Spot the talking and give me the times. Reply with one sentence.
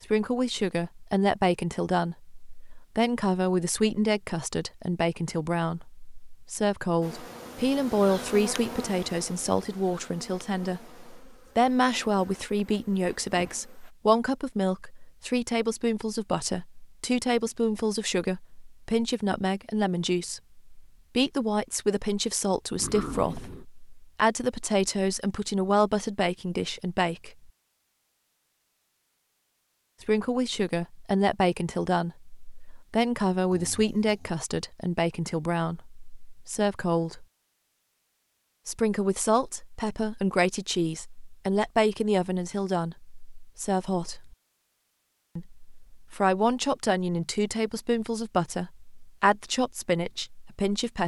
The talking can be heard from 0.0 to 27.5 s, from 30.0 to 37.2 s, from 38.6 to 44.4 s and from 45.4 to 51.0 s.